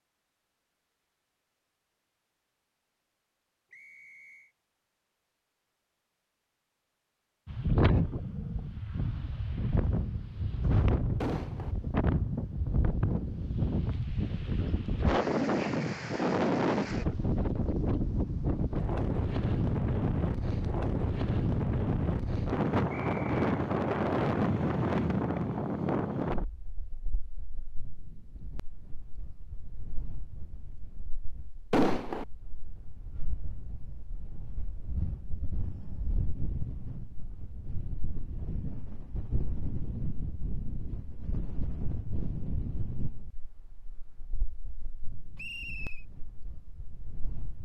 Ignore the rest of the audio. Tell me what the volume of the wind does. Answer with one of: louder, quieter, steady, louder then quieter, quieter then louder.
quieter.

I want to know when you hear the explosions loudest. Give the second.
32 s.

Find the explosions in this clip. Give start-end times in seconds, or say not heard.
11.2-11.8, 31.7-32.2.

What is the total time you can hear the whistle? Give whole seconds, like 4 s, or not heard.
2 s.